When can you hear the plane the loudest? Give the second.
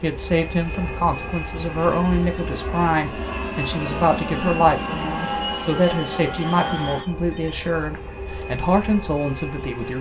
5 s.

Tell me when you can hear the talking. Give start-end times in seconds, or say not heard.
0.0-9.9.